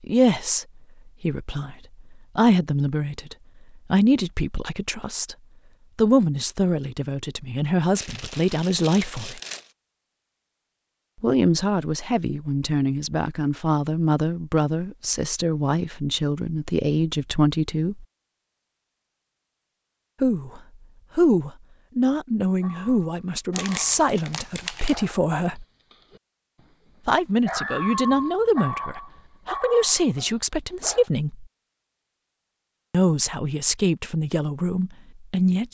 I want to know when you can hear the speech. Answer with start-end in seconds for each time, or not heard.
0.0-5.3, 6.0-9.4, 11.2-18.1, 20.2-25.6, 27.1-31.4, 32.9-35.6.